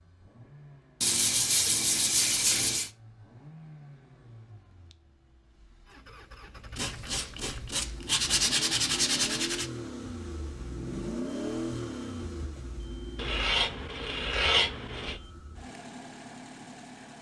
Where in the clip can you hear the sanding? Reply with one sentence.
You can hear the sanding from 1.0 to 2.9 s, from 6.8 to 9.7 s and from 13.2 to 15.2 s.